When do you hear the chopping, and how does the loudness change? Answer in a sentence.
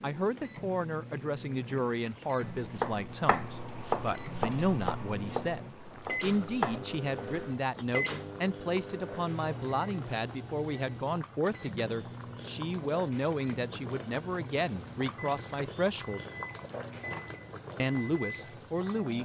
You can hear the chopping from 2.4 to 7.5 s, getting quieter then louder.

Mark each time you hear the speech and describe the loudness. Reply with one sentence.
The speech can be heard from 0.0 to 16.2 s, at a steady volume; and briefly from 17.8 to 19.1 s.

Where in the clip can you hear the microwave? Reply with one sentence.
The microwave can be heard from 0.3 to 19.1 s.